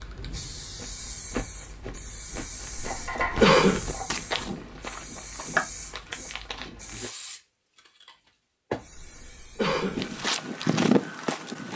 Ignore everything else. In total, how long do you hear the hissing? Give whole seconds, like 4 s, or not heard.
10 s.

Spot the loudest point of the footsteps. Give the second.
11 s.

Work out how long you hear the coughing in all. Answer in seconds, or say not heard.
2 s.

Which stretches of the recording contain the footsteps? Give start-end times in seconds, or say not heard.
0.8-7.1, 9.9-11.7.